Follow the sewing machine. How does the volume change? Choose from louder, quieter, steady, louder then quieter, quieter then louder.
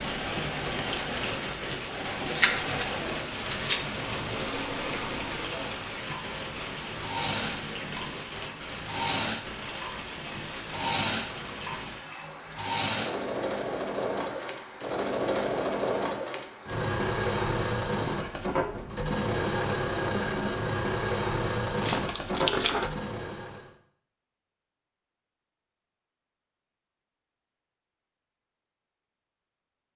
louder.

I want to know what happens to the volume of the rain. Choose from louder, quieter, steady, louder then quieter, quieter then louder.
quieter.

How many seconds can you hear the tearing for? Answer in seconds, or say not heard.
3 s.